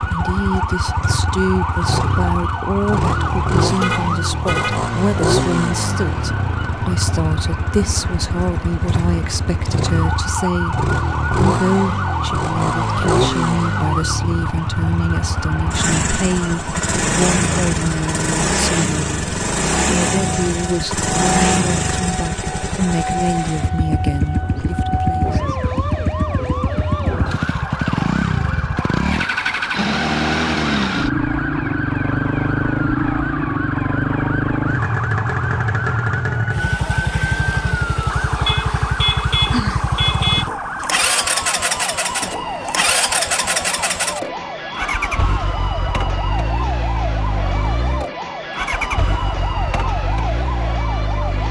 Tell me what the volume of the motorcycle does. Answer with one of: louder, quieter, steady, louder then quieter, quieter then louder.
steady.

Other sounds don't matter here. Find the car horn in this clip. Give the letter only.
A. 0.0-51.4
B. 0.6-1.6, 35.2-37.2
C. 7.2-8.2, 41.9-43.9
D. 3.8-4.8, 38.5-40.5
D.